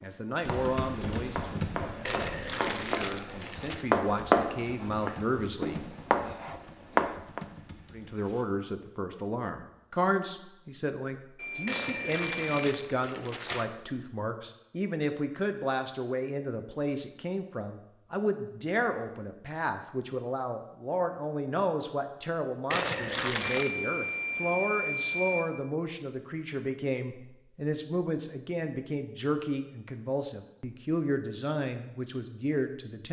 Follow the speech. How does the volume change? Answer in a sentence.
The volume of the speech stays about the same.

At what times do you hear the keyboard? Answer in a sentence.
You can hear the keyboard from 0.5 to 8.4 s.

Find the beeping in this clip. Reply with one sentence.
You can hear the beeping from 11.3 to 12.7 s and from 23.4 to 25.4 s.